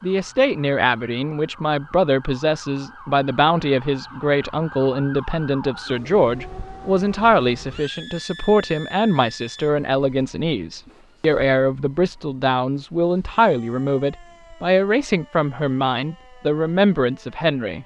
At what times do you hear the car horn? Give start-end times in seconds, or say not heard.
not heard.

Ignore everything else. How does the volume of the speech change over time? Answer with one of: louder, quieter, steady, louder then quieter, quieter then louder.
steady.